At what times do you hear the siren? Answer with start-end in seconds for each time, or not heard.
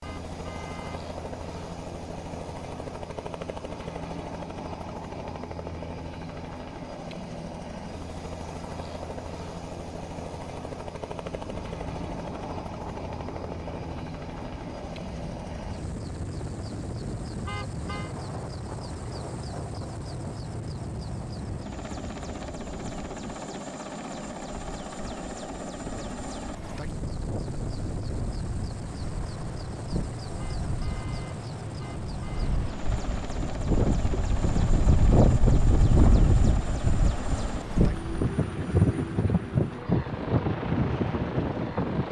not heard.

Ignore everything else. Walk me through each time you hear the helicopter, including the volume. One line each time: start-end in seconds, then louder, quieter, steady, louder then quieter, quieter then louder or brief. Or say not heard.
0.0-42.0 steady.